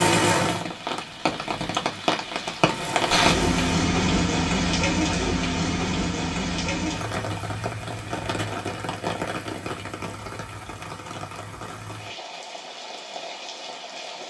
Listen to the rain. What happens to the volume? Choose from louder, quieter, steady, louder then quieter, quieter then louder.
quieter.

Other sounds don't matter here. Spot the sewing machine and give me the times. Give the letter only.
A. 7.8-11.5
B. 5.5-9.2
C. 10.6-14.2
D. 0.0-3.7
D.